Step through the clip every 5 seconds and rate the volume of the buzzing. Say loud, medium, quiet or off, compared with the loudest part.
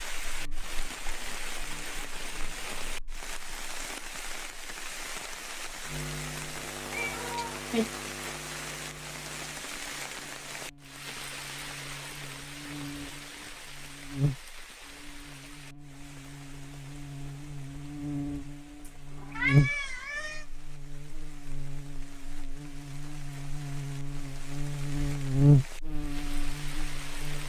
quiet, quiet, quiet, medium, quiet, loud.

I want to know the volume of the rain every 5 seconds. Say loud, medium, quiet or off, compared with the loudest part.
loud, loud, loud, quiet, quiet, medium.